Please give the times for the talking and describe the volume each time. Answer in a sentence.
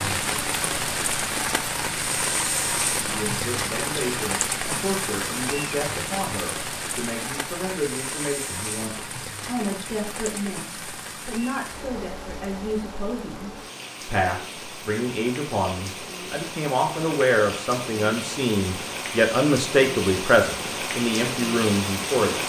You can hear the talking from 3.0 to 22.4 s, getting louder.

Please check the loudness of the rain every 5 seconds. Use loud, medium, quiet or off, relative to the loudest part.
loud, medium, medium, medium, loud.